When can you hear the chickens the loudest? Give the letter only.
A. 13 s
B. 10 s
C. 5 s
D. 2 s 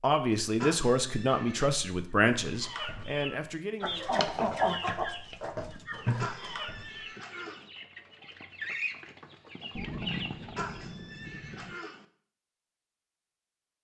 C.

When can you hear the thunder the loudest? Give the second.
10 s.